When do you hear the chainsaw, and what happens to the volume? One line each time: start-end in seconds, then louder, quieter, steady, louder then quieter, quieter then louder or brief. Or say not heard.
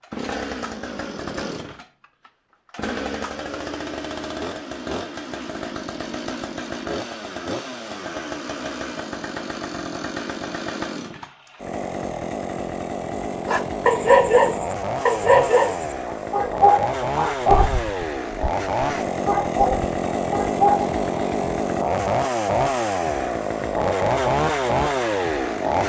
0.0-25.8 louder.